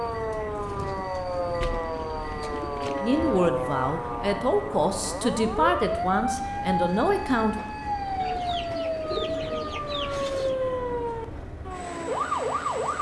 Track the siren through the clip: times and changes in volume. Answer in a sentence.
You can hear the siren from 0.0 to 12.9 s, at a steady volume.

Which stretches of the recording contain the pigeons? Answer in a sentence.
You can hear the pigeons from 1.6 to 3.2 s and from 8.2 to 10.6 s.